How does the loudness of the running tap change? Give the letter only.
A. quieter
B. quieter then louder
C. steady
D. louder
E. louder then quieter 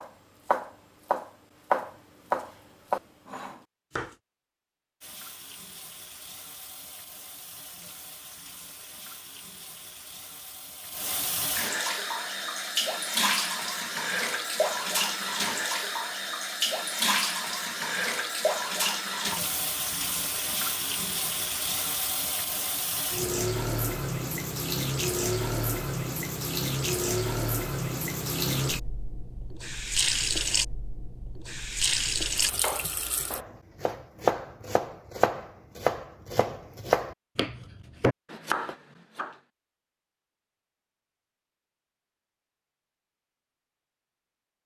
D.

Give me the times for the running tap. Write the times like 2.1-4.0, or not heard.
5.0-33.4.